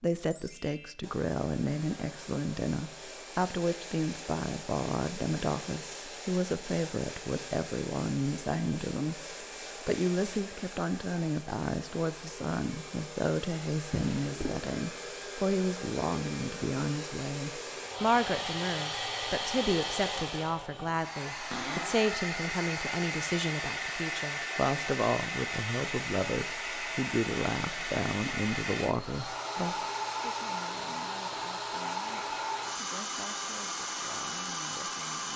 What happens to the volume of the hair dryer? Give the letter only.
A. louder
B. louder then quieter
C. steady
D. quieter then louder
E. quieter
A.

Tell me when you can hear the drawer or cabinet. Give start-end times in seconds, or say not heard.
13.9-14.5, 21.5-22.1.